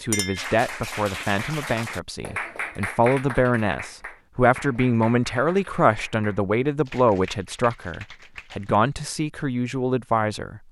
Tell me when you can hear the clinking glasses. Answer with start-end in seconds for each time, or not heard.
0.1-0.6.